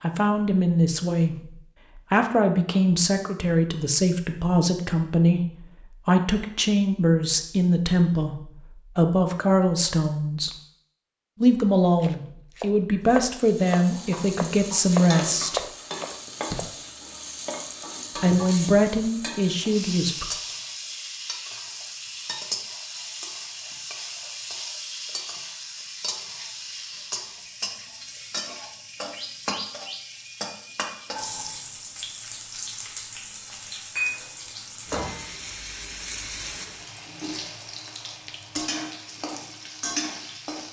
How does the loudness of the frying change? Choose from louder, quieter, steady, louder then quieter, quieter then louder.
steady.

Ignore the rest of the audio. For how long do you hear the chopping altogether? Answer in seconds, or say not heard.
5 s.